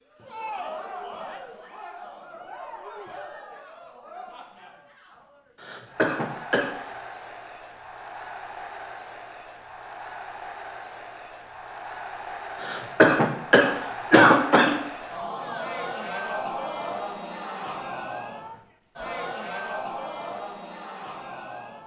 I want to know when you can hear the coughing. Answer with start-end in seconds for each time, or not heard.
5.6-6.7, 12.6-14.7.